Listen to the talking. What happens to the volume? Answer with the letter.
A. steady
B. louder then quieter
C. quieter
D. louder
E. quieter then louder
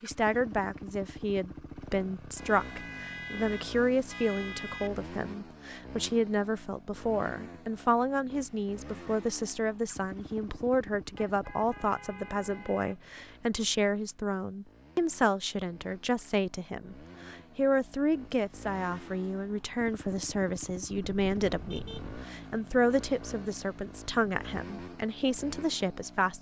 A.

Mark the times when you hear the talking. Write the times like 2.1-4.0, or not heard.
0.0-26.3.